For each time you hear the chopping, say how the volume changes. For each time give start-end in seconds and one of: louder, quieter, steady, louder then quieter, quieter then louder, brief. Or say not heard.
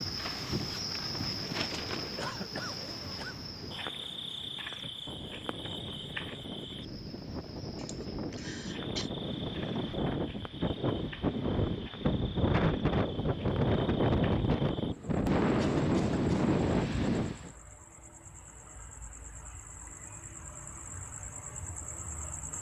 not heard.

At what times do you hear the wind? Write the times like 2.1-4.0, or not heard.
0.0-17.5.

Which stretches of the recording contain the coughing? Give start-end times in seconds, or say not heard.
2.1-3.4, 7.8-9.1, 15.6-16.6.